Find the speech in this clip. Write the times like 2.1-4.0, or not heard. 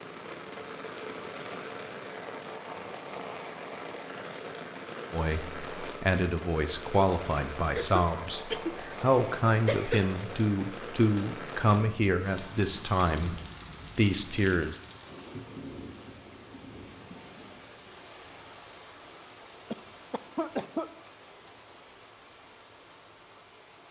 5.1-13.3, 13.9-14.8.